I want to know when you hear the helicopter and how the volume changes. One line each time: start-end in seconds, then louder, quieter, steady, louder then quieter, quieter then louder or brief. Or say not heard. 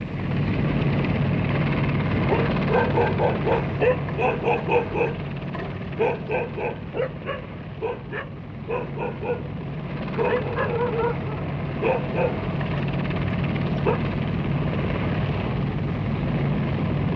0.0-17.1 quieter then louder.